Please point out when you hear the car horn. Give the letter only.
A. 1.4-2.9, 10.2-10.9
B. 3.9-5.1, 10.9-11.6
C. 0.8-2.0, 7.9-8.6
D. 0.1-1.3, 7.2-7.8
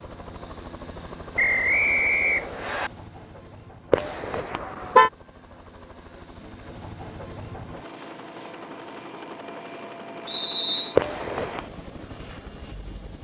B.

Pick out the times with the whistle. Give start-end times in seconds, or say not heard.
1.4-2.9, 10.2-10.9.